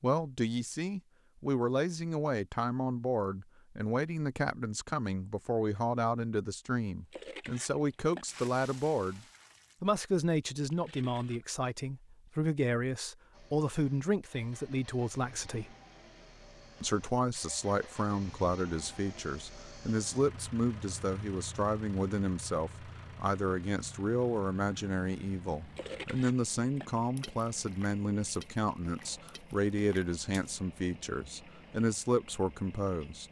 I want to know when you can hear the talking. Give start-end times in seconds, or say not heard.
0.0-15.8, 16.8-33.2.